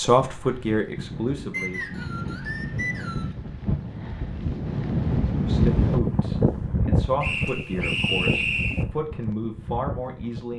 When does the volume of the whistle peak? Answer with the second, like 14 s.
8 s.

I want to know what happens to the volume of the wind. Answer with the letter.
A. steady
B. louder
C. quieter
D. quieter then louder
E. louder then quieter
E.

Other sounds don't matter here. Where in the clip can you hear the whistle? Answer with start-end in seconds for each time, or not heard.
1.5-3.4, 7.2-8.8.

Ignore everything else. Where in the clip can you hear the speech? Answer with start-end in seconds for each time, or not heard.
0.0-1.8, 5.4-10.5.